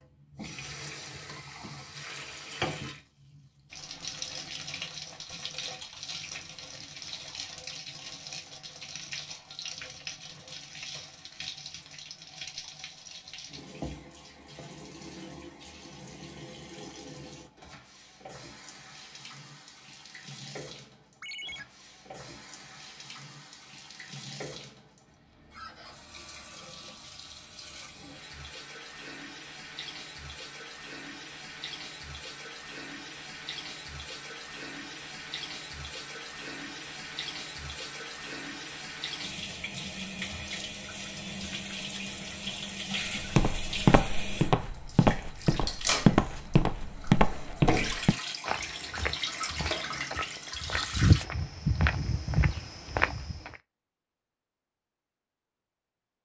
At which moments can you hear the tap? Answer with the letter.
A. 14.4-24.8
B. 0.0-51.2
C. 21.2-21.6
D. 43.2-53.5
B.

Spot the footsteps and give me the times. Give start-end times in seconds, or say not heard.
43.2-53.5.